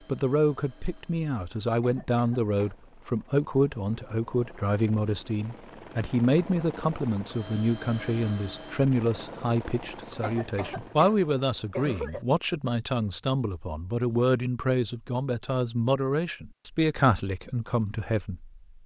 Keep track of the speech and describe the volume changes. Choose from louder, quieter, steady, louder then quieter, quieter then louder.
steady.